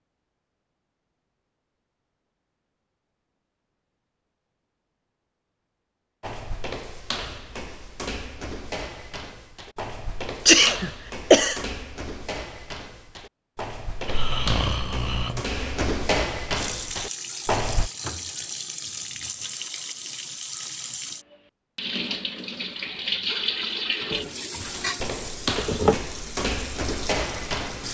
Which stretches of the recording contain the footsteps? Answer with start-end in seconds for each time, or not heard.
6.2-17.9, 24.6-27.8.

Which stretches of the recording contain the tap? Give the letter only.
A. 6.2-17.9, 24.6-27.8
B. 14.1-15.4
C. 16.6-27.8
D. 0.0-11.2
C.